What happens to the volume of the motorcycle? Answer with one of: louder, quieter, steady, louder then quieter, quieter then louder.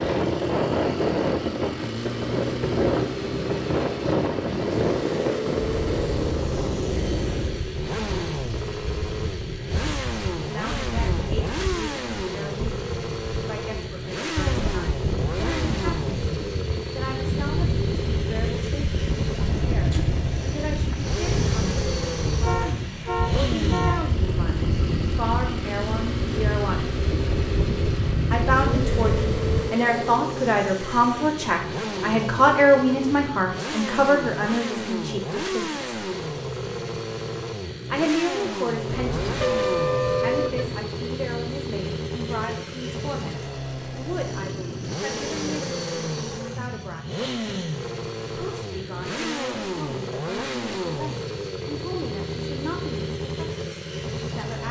steady.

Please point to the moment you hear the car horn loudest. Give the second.
40 s.